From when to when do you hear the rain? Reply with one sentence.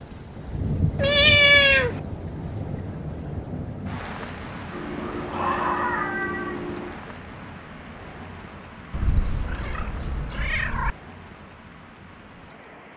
You can hear the rain from 0.0 to 12.9 s.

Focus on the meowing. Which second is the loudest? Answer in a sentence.
The volume of the meowing peaks at 1 second.